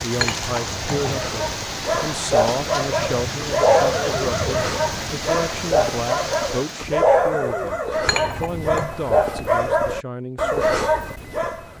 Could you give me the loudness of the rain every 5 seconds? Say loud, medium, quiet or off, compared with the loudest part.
loud, loud, off.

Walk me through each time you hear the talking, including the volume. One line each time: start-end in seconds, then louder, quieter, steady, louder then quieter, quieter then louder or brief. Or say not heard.
0.0-10.8 steady.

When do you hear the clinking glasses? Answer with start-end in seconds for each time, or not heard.
0.1-1.5, 8.1-8.9.